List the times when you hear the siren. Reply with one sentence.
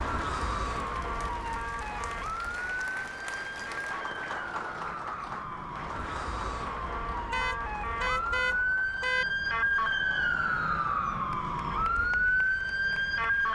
You can hear the siren from 0.0 to 13.5 s.